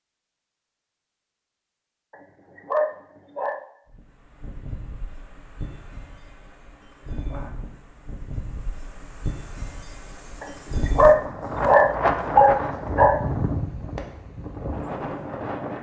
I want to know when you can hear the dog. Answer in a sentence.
You can hear the dog from 2.1 to 3.6 s and from 10.4 to 13.2 s.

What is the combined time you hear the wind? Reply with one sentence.
You can hear the wind for 12 seconds altogether.